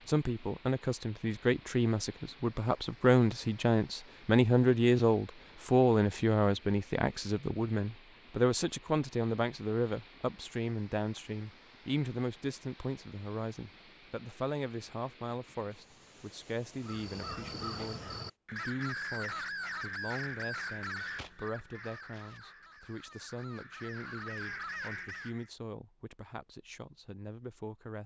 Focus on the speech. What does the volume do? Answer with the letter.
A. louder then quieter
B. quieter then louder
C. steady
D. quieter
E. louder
D.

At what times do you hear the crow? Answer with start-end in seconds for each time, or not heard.
16.8-25.5.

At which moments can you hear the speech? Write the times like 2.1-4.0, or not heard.
0.1-28.0.